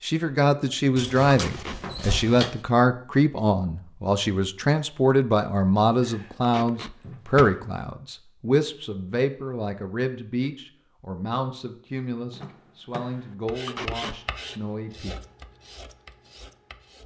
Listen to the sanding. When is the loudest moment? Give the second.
14 s.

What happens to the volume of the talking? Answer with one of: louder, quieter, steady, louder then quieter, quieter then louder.
quieter.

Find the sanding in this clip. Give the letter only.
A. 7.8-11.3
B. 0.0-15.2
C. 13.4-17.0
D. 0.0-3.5
C.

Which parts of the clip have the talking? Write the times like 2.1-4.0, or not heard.
0.0-15.2.